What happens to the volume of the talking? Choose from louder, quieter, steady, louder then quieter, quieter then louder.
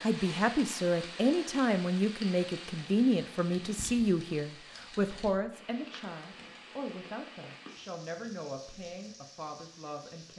quieter.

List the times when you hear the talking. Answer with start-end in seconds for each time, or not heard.
0.0-10.3.